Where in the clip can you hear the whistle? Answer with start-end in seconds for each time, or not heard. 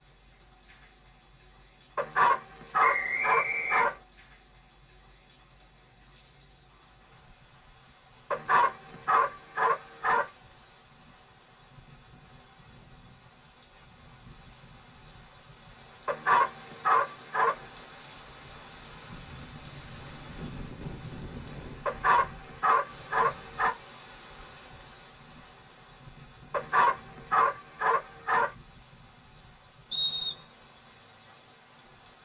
2.8-4.0, 29.9-30.5.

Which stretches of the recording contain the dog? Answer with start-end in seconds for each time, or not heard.
1.9-4.0, 8.3-10.2, 16.1-17.6, 21.9-23.8, 26.5-28.5.